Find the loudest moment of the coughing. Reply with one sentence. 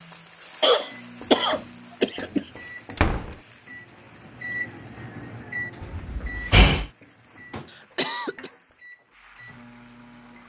The volume of the coughing peaks at 1 second.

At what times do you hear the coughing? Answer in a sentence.
The coughing can be heard from 0.6 to 2.5 s and from 7.7 to 8.5 s.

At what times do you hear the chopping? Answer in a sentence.
You can't hear the chopping here.